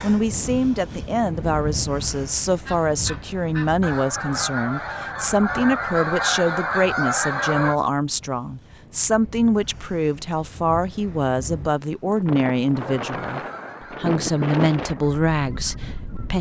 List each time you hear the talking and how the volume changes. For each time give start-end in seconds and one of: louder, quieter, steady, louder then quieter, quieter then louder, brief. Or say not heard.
0.0-16.3 steady.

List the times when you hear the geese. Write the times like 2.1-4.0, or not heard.
2.6-7.8, 13.1-16.3.